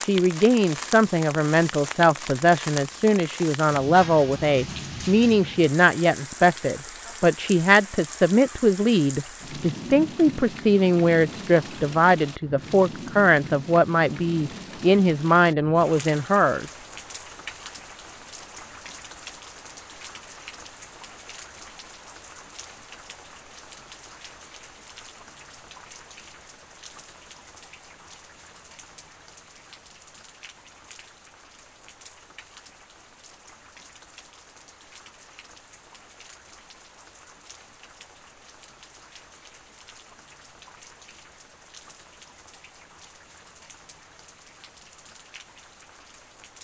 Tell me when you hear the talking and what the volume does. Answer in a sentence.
The talking can be heard from 0.0 to 16.7 s, at a steady volume.